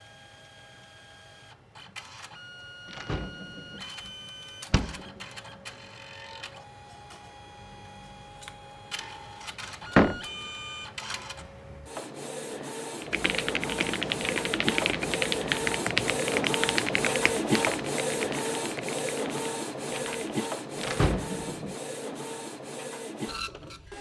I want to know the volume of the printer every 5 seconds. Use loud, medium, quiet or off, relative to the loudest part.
quiet, quiet, medium, loud, medium.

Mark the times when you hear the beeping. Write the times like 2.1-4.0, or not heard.
not heard.